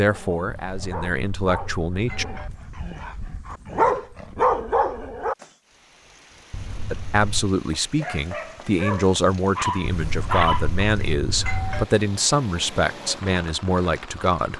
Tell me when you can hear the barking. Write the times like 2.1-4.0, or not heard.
0.0-5.5, 7.7-10.8.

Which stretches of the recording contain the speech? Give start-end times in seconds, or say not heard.
0.0-2.2, 6.9-14.5.